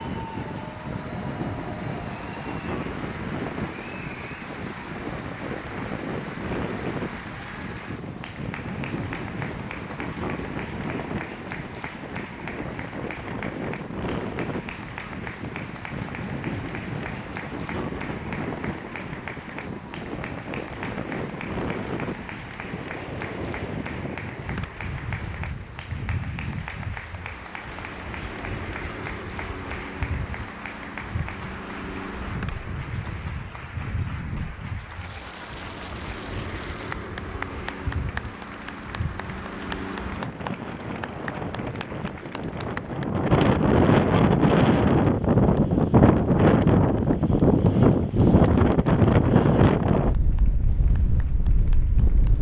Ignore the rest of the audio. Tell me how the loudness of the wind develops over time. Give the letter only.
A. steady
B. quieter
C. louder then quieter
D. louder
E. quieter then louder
D.